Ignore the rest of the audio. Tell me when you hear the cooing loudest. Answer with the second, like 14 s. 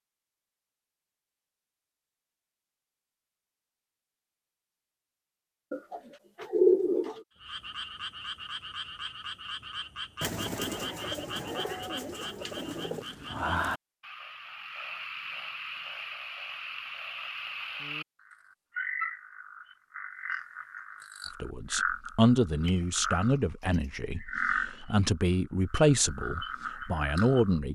7 s.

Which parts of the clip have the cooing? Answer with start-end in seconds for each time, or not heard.
5.7-7.2, 10.2-13.1, 22.6-23.9.